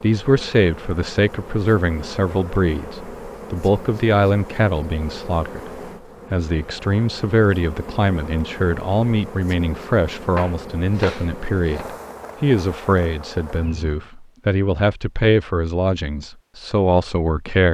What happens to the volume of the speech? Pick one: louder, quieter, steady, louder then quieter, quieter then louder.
steady.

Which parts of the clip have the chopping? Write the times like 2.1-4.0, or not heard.
10.3-11.8.